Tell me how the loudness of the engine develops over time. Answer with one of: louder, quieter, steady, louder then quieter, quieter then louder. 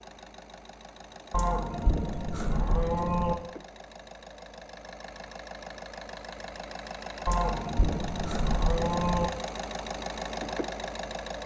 louder.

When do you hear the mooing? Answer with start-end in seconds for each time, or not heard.
1.3-3.4, 7.2-9.3.